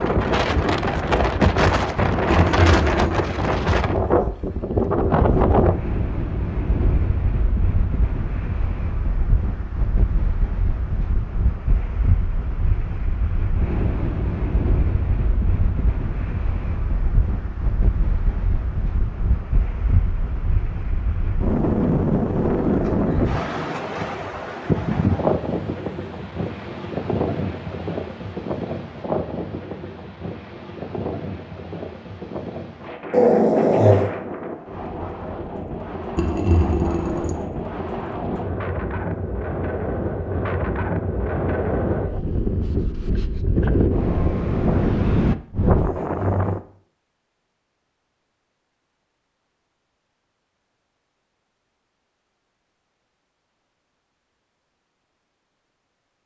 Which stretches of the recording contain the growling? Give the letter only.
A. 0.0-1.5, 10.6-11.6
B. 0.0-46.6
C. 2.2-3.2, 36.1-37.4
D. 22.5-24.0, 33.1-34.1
D.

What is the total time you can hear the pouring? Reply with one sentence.
The pouring can be heard for 2 seconds in total.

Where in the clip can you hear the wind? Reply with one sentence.
You can hear the wind from 0.0 to 46.6 s.